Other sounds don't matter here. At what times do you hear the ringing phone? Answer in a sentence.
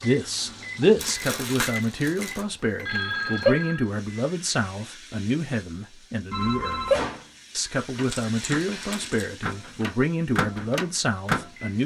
The ringing phone can be heard from 2.9 to 3.9 s and from 6.3 to 7.0 s.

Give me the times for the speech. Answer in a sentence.
The speech can be heard from 0.0 to 11.8 s.